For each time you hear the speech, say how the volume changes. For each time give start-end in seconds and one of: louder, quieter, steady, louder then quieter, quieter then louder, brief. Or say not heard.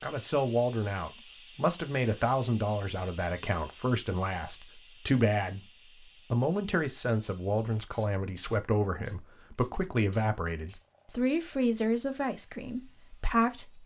0.0-13.8 steady.